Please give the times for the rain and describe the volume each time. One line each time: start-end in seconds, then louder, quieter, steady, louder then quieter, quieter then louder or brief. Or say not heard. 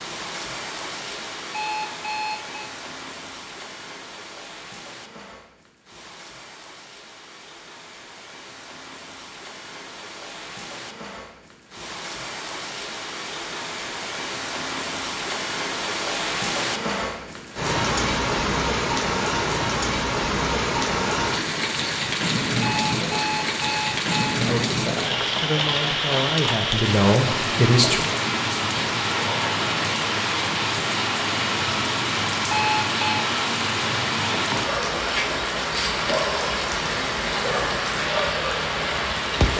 0.0-39.5 louder.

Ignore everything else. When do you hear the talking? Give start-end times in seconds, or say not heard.
24.4-28.0.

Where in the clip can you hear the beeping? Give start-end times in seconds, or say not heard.
1.5-2.7, 22.6-24.4, 32.5-33.2.